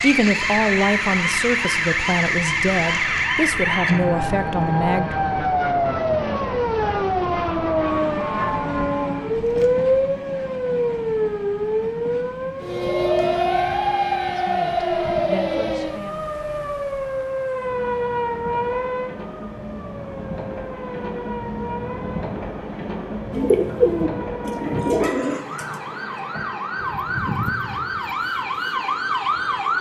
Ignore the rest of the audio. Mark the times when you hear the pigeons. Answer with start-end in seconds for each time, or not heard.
23.3-28.9.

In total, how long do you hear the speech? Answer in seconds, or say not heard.
7 s.